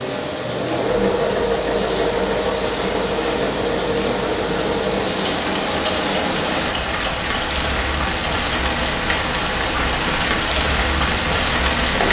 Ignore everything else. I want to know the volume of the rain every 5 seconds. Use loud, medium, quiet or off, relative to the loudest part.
medium, loud, loud.